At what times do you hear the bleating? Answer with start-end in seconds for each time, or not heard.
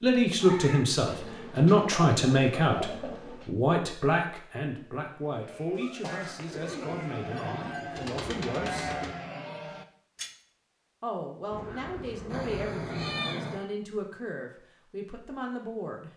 5.3-10.3.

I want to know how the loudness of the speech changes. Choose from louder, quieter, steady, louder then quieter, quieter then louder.
quieter.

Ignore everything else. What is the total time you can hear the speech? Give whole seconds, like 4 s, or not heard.
14 s.